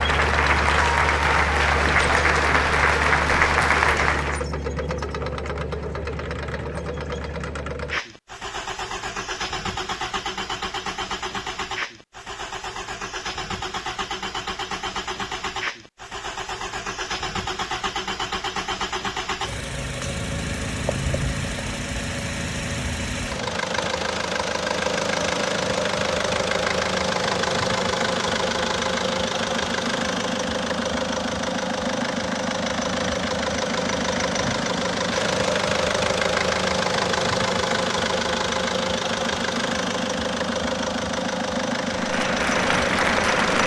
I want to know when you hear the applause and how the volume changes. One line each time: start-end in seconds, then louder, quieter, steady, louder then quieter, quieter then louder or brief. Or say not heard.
0.0-4.5 steady
41.9-43.6 brief.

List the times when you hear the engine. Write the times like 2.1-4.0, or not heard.
0.0-43.6.